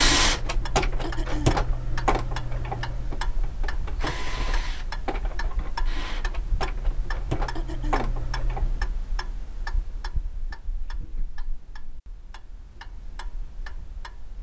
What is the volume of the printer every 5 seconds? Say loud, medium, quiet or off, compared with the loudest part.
loud, medium, off.